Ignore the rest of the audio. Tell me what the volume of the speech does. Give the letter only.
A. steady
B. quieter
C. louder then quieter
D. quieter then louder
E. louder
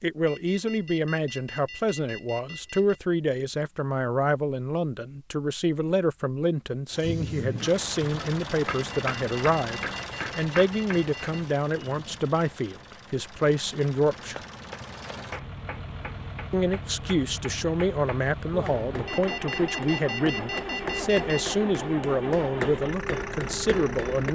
A.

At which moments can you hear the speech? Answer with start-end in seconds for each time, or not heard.
0.0-14.4, 16.5-24.2.